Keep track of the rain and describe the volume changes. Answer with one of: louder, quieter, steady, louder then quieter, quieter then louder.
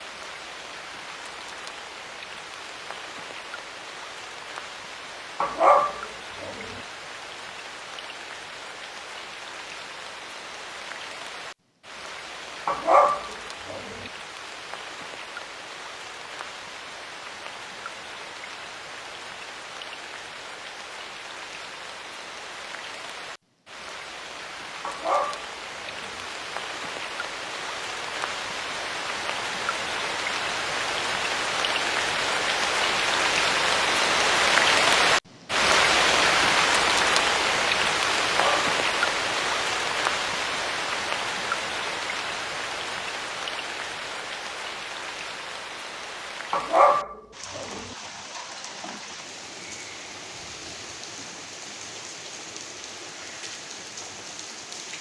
louder then quieter.